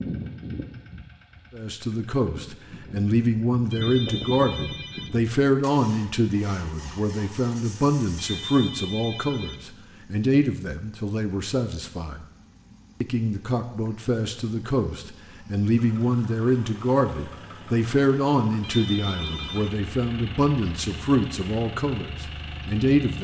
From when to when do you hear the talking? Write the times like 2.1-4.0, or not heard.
1.6-12.2, 13.0-23.1.